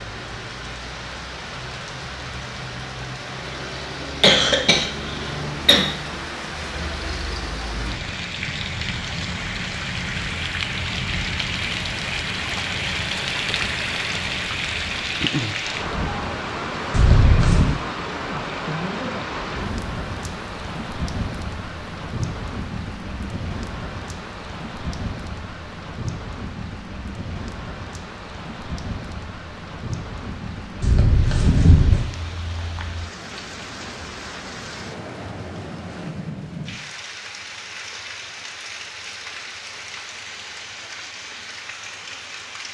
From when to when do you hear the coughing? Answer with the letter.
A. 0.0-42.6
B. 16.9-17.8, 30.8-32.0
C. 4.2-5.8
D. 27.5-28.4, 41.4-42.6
C.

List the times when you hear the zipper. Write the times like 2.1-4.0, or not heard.
16.9-17.8, 30.8-32.0.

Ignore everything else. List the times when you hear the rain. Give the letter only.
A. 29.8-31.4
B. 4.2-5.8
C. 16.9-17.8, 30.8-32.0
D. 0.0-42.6
D.